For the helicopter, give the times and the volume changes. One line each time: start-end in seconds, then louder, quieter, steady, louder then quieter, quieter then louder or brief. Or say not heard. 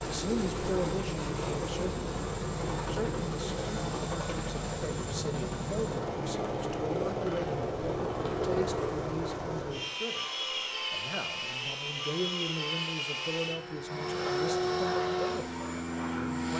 0.0-16.5 steady.